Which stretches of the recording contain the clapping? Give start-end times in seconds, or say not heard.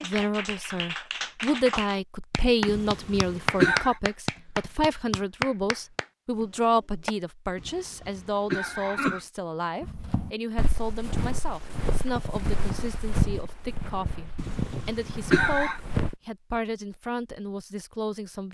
0.0-7.2.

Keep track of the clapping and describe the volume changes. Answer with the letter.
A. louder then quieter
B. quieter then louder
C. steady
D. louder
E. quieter
A.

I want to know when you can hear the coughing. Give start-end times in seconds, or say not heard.
2.6-4.0, 7.5-9.2, 14.3-15.8.